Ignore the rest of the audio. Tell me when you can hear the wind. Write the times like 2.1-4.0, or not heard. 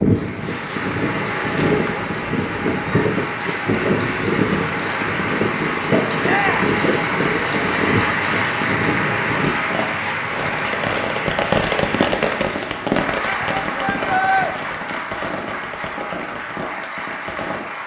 0.0-9.5.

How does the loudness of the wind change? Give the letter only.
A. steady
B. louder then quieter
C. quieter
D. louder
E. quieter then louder
A.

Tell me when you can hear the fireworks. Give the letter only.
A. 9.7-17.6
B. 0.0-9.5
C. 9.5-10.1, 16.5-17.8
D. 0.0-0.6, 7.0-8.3
A.